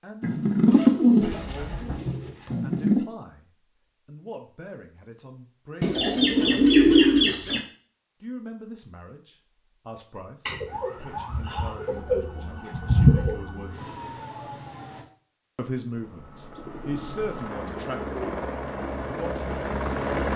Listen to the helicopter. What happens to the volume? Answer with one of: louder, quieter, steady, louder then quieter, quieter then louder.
louder.